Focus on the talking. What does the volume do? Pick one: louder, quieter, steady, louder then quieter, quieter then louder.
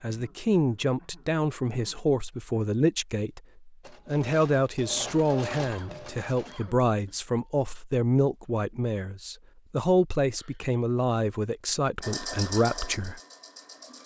steady.